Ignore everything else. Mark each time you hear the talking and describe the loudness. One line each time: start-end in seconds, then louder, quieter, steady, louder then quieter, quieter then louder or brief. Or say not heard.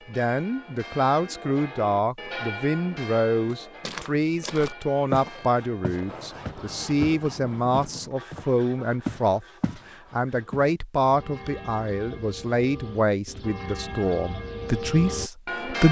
0.1-15.8 steady.